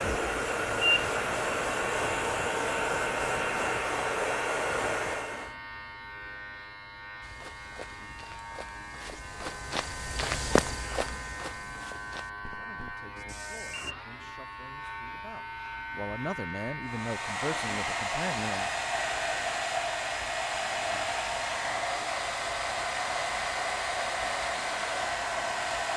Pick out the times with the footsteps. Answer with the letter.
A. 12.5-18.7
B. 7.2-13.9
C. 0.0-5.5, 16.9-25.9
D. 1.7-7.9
B.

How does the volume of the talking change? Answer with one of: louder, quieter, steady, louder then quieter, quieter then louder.
louder.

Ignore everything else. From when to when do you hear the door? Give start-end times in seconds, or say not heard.
not heard.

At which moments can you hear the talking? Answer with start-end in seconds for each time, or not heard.
12.5-18.7.